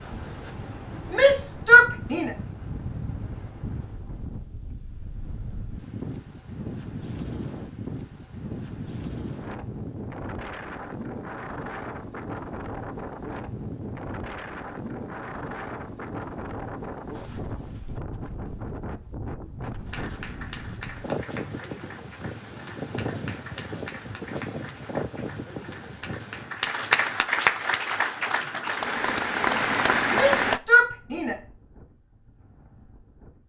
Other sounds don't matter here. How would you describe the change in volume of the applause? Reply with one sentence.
The loudness of the applause goes up.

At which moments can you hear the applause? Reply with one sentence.
You can hear the applause from 19.9 to 30.6 s.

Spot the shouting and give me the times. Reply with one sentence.
The shouting can be heard from 1.1 to 2.4 s and from 30.1 to 31.4 s.